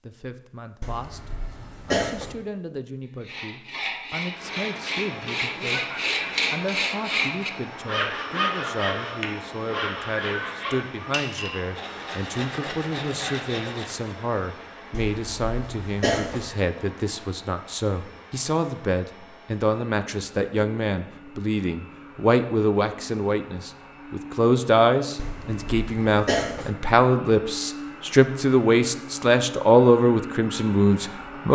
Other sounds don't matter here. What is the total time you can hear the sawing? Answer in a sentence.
The sawing can be heard for 11 seconds in total.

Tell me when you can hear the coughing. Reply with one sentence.
You can hear the coughing from 0.8 to 2.4 s, from 14.9 to 16.4 s and from 25.1 to 26.7 s.